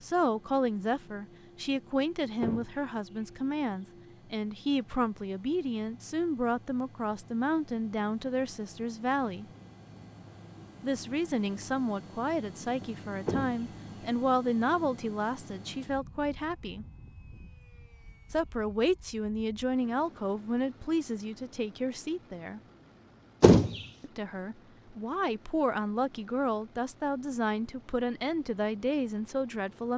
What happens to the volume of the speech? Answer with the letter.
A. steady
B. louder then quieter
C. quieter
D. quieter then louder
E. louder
A.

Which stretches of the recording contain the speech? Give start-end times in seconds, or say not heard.
0.0-9.4, 10.8-16.9, 18.3-22.6, 24.0-29.9.